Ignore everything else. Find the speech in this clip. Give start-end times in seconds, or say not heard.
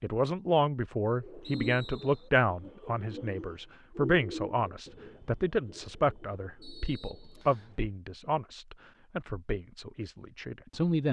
0.0-11.0.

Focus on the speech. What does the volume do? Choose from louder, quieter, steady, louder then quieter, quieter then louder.
quieter.